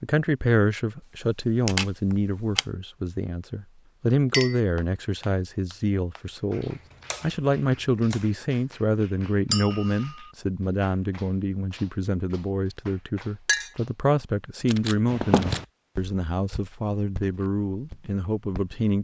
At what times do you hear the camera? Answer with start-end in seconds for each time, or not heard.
1.0-2.6, 6.7-8.3, 14.7-15.7.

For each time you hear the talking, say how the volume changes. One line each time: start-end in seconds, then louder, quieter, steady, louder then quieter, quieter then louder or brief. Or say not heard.
0.0-18.9 steady.